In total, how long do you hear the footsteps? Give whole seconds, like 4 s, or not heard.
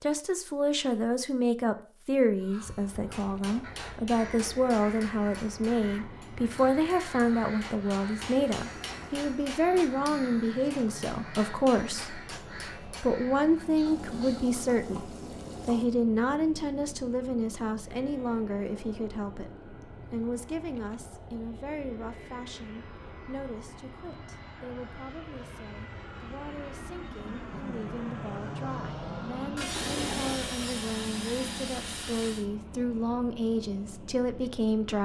not heard.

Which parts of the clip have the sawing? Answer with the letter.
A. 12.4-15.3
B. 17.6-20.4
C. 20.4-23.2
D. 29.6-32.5
D.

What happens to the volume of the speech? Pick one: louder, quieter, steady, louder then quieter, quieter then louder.
quieter then louder.